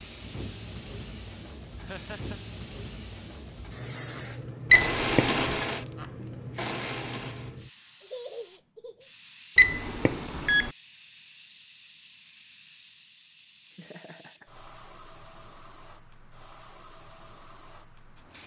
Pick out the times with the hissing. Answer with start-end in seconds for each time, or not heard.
0.0-18.4.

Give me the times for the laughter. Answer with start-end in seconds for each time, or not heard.
1.8-2.4, 8.0-9.1, 13.7-14.5.